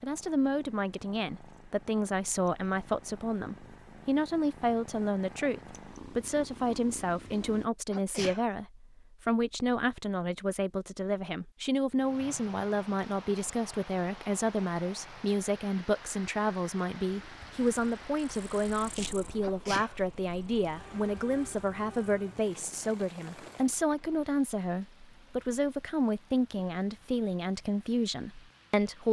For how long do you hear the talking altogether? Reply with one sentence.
The talking can be heard for 29 seconds in total.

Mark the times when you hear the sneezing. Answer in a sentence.
You can hear the sneezing from 7.9 to 8.4 s and from 19.4 to 20.0 s.